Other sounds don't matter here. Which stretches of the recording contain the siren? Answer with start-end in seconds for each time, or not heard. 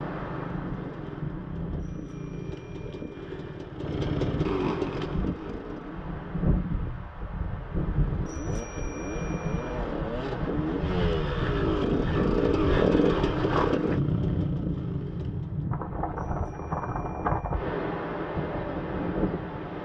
not heard.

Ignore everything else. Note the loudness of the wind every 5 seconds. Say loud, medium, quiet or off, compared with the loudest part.
medium, loud, loud, loud.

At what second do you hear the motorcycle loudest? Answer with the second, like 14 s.
13 s.